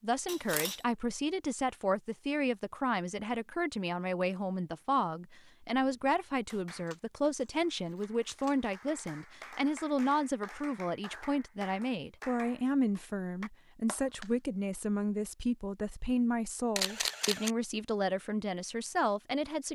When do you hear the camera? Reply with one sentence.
You can hear the camera from 0.2 to 0.8 s, from 6.8 to 8.6 s and from 16.8 to 17.6 s.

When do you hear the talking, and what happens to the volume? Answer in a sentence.
You can hear the talking from 0.0 to 19.7 s, at a steady volume.